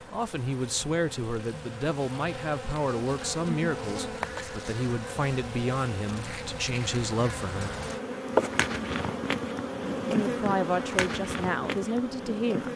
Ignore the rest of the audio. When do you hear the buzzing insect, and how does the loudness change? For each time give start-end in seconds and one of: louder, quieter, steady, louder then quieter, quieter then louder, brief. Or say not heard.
0.0-12.7 louder.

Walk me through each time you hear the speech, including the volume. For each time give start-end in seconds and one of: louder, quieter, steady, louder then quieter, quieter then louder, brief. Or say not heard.
0.1-7.8 steady
10.1-12.7 brief.